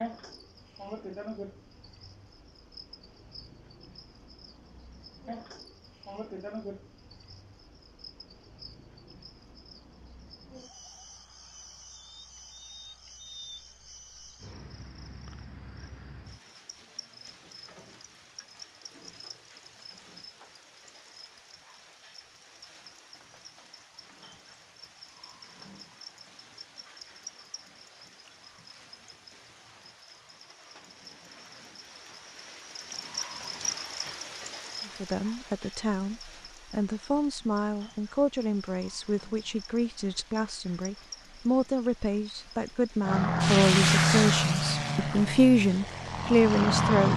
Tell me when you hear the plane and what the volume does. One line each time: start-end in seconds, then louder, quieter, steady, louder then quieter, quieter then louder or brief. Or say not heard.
43.0-47.1 quieter then louder.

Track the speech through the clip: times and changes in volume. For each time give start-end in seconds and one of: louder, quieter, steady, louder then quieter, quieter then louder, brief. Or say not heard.
34.9-47.1 louder.